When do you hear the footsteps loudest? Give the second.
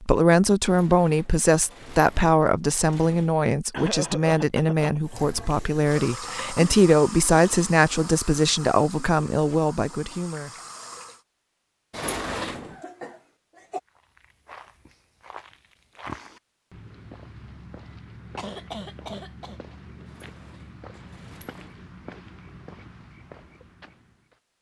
16 s.